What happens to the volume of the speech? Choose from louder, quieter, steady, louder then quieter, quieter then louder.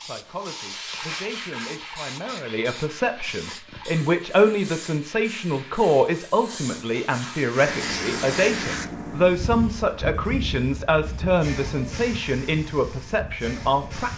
louder.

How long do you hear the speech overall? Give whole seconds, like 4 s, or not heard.
14 s.